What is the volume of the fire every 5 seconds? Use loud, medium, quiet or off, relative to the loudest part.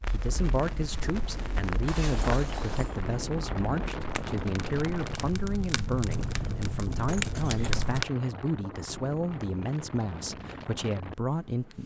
medium, loud, off.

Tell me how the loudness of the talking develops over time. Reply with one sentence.
The loudness of the talking stays about the same.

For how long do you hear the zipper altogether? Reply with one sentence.
The zipper can be heard for 2 seconds in total.